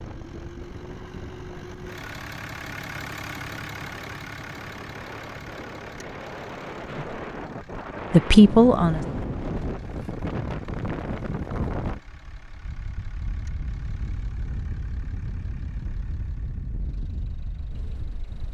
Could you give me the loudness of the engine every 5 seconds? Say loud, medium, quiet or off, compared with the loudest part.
loud, medium, quiet, quiet.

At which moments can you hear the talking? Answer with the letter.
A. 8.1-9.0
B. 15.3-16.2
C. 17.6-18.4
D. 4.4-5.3
A.